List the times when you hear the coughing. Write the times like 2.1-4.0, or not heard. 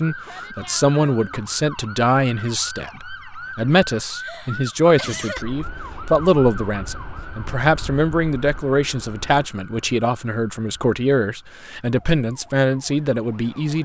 4.1-5.5.